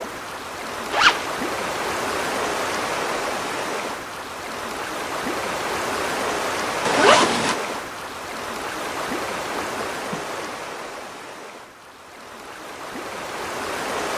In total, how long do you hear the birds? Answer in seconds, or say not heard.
not heard.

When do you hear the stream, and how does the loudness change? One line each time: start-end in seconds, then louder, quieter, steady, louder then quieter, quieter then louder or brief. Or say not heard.
0.0-14.1 quieter.